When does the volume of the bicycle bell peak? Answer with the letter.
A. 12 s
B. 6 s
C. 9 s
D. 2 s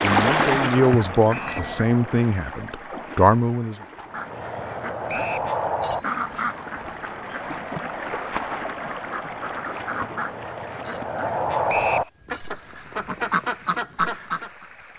B.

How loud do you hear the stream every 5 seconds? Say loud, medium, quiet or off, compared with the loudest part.
loud, medium, quiet.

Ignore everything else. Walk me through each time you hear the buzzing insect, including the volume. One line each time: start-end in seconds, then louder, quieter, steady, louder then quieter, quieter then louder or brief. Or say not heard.
not heard.